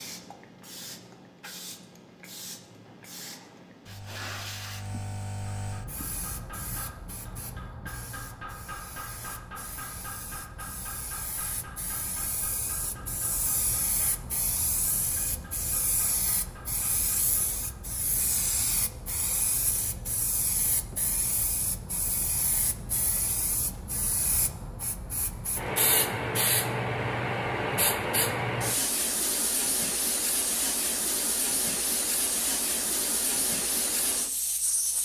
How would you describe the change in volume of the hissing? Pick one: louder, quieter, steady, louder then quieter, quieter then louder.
louder.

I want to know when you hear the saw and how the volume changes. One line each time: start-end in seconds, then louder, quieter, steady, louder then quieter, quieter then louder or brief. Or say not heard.
not heard.